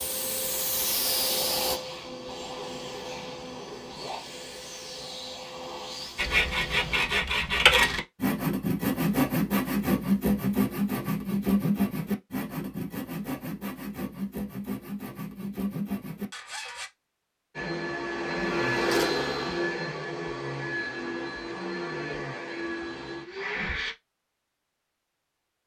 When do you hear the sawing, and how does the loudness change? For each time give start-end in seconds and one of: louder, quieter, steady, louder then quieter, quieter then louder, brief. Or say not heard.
6.2-16.9 quieter.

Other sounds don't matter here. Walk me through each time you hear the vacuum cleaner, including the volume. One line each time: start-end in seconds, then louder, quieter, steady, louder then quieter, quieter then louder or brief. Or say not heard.
0.0-7.1 quieter
17.5-23.9 quieter.